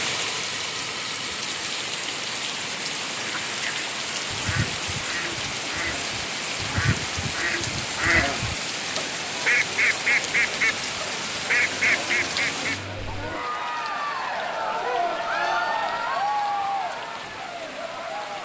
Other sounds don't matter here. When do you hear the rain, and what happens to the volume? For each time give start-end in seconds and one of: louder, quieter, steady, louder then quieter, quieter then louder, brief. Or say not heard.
0.0-18.4 quieter.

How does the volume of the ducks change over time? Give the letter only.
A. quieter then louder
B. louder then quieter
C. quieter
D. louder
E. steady
D.